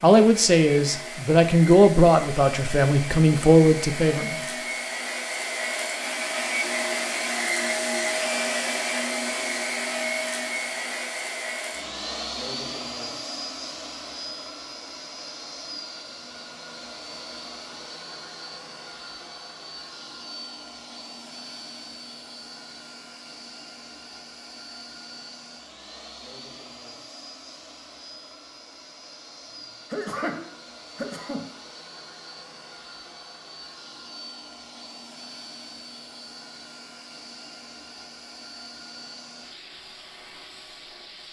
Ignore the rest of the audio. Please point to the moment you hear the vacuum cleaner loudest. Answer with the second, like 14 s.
8 s.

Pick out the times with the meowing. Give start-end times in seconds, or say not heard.
not heard.